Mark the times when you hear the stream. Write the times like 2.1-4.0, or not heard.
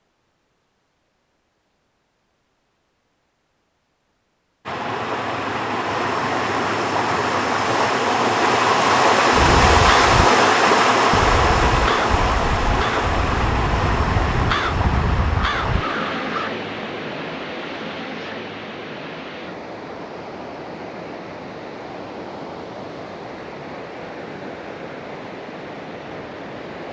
4.7-26.8.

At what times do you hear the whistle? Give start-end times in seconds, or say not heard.
not heard.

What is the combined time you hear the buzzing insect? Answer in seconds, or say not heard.
not heard.